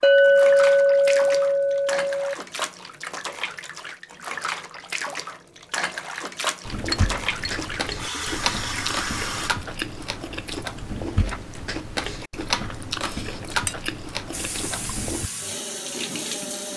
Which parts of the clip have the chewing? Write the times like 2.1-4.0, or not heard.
6.7-15.3.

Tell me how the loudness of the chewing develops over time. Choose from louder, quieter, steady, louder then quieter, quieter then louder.
steady.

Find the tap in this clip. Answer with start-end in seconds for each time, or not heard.
0.0-9.5, 14.3-16.7.